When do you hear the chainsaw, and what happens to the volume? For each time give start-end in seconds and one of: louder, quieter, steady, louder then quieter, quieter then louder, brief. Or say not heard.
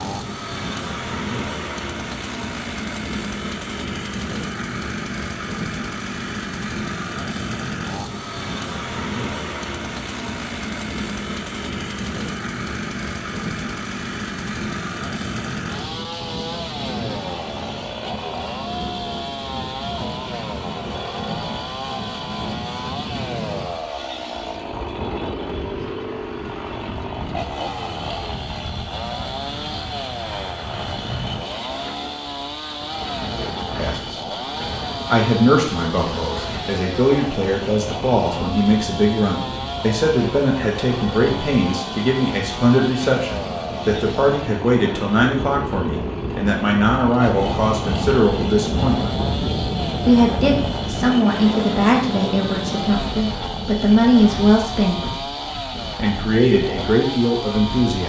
0.0-58.0 steady.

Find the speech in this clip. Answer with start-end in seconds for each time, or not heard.
33.8-34.4, 35.0-49.2, 50.0-55.0, 55.9-58.0.